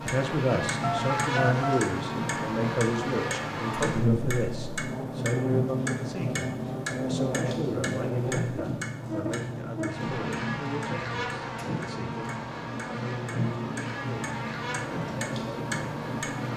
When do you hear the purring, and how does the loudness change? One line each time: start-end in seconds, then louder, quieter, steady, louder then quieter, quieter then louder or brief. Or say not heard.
not heard.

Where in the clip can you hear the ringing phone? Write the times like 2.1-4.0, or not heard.
0.8-1.9.